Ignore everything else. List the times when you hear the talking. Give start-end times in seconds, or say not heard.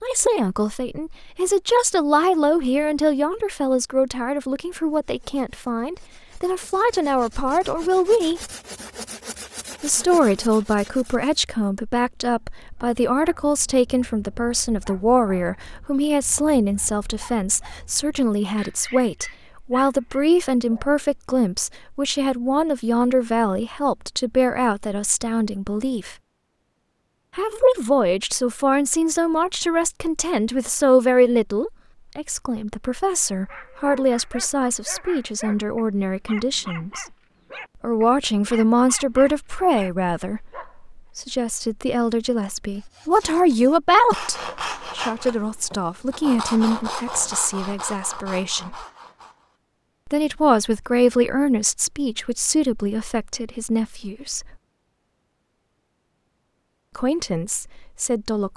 0.0-8.4, 9.8-26.1, 27.4-37.0, 37.8-48.8, 50.0-54.5, 57.0-58.5.